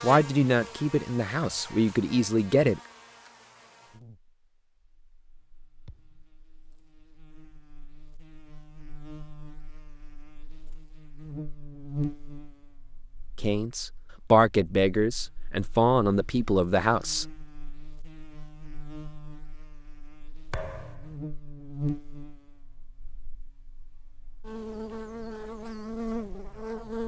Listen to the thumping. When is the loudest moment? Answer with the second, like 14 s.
21 s.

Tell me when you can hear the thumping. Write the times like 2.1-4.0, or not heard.
5.8-6.2, 20.5-21.1.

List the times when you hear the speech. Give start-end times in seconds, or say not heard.
0.0-2.8, 13.4-17.2.